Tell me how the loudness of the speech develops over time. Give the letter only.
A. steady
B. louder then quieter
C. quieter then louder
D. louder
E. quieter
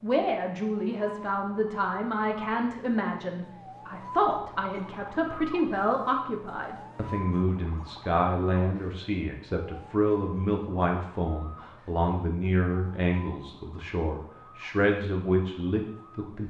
A.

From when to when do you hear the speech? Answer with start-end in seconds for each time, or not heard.
0.0-16.4.